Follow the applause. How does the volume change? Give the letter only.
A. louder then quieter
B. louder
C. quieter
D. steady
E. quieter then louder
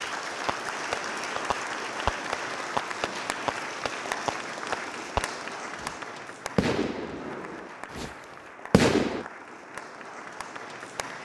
C.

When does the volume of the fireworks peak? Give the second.
9 s.